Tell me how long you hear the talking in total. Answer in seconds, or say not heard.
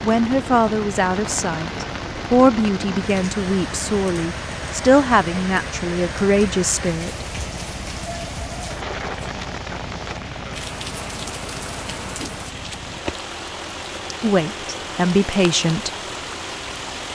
9 s.